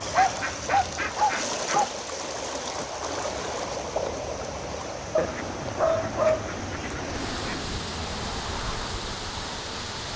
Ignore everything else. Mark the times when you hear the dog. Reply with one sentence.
You can hear the dog from 0.1 to 1.9 s and from 5.2 to 6.5 s.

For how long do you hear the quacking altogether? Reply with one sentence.
The quacking can be heard for 4 seconds in total.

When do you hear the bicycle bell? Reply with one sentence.
You can't hear the bicycle bell here.